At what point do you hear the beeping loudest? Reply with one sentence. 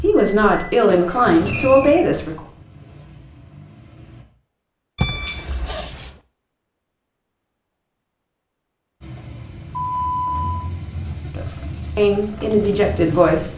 The volume of the beeping peaks at 10 seconds.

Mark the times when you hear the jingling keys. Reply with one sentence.
The jingling keys can be heard from 5.0 to 6.2 s.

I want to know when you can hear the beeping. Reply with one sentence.
The beeping can be heard from 0.1 to 0.8 s, from 5.0 to 5.6 s and from 9.7 to 10.6 s.